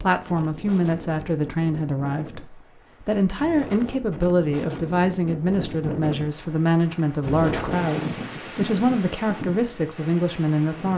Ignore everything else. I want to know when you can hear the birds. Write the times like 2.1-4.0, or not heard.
not heard.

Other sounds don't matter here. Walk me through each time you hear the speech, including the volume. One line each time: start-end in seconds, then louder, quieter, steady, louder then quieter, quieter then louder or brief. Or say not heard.
0.0-10.9 steady.